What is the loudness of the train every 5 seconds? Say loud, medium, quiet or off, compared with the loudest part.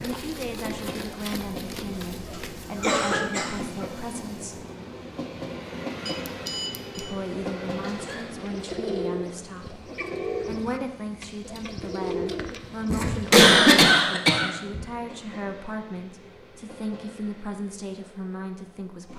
loud, loud, medium, medium.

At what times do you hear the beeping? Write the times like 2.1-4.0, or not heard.
6.0-7.2.